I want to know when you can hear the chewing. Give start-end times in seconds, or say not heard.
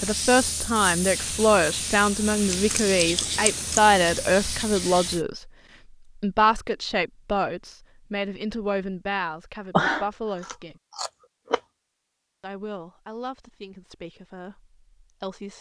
2.5-4.2, 9.7-11.6.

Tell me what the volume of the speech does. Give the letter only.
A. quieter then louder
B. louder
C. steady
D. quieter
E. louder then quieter
D.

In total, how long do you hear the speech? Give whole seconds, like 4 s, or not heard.
13 s.